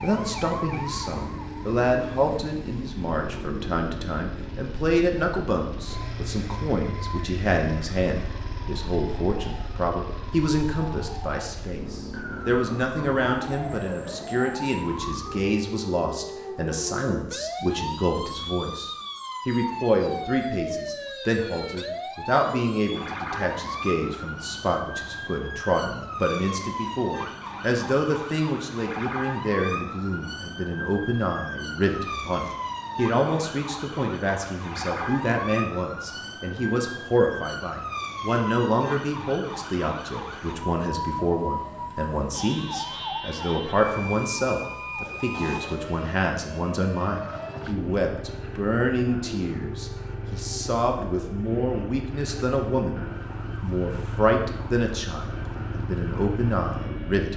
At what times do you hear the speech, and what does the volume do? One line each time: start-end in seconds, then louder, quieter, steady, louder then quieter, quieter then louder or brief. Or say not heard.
0.0-57.3 steady.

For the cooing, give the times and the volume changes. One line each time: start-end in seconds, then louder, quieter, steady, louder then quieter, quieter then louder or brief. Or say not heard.
not heard.